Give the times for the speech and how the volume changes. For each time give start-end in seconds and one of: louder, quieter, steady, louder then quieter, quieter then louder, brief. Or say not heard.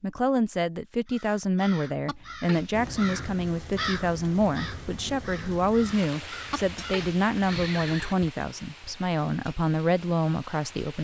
0.0-10.9 steady.